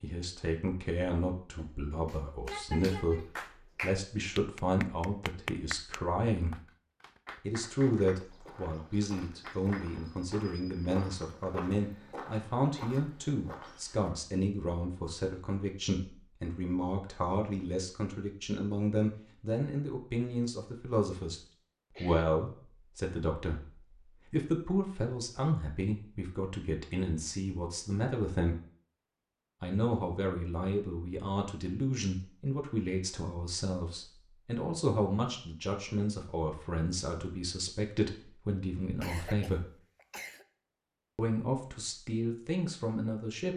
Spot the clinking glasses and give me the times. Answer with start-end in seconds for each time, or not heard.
not heard.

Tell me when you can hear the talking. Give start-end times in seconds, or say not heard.
0.0-6.6, 7.4-21.4, 22.0-28.6, 29.6-39.6, 41.1-43.5.